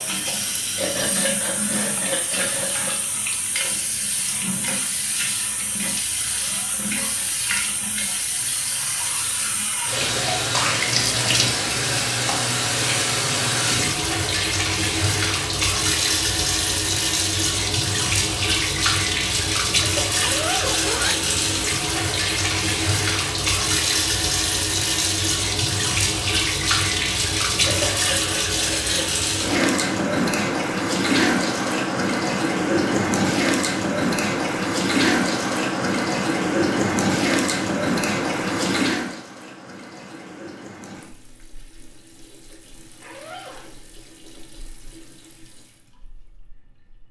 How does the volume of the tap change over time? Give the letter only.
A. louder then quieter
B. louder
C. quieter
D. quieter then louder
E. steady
A.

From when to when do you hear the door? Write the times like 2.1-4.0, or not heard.
not heard.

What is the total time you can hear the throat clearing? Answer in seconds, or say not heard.
4 s.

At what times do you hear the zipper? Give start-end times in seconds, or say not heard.
6.5-7.3, 20.1-21.2, 43.0-43.8.